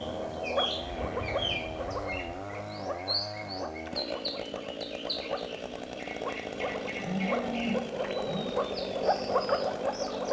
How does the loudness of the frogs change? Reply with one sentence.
The volume of the frogs goes down, then up.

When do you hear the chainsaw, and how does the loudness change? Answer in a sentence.
The chainsaw can be heard from 0.0 to 10.2 s, at a steady volume.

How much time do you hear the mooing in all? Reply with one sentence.
You can hear the mooing for 3 seconds altogether.